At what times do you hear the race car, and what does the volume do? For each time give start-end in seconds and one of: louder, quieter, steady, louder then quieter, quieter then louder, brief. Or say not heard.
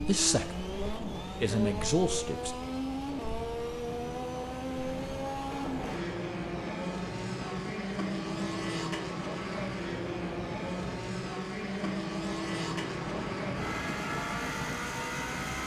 0.0-15.6 steady.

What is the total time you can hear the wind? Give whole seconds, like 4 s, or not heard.
12 s.